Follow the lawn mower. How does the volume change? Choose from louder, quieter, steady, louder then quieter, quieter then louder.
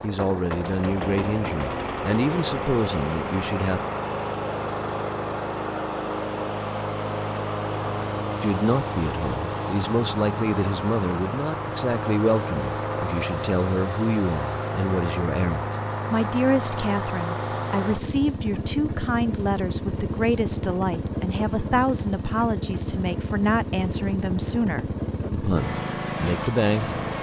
steady.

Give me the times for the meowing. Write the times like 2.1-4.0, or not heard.
not heard.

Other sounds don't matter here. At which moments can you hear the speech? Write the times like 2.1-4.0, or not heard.
0.0-3.8, 8.4-26.9.